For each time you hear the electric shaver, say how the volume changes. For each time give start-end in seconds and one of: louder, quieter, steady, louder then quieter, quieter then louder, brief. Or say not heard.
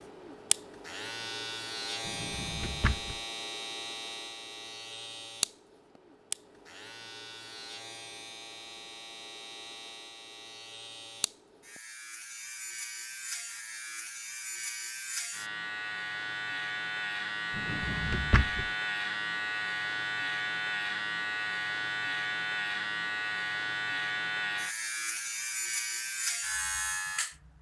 0.0-27.5 quieter then louder.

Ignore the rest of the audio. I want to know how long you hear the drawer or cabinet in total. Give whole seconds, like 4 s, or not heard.
2 s.